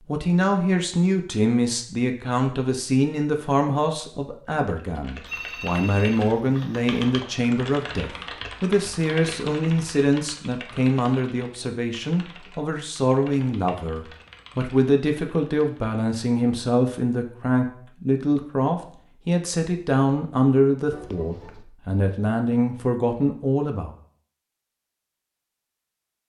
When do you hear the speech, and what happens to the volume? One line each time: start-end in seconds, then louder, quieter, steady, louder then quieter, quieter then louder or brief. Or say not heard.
0.1-23.9 steady.